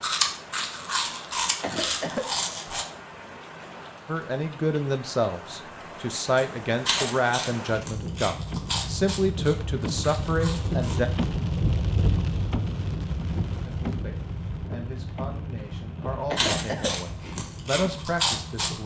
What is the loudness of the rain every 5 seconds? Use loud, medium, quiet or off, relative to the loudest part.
quiet, medium, loud, medium.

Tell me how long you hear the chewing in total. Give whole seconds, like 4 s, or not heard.
10 s.